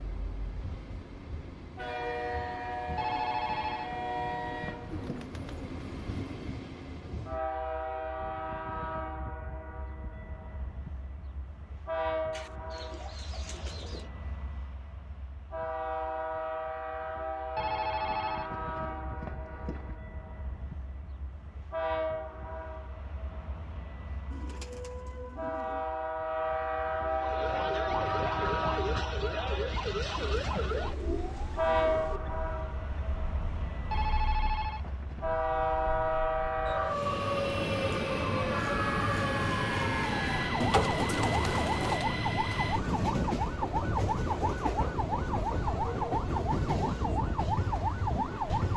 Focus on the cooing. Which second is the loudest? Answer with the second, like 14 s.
41 s.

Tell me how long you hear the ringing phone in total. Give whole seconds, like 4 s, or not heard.
6 s.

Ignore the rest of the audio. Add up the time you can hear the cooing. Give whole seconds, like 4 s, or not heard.
9 s.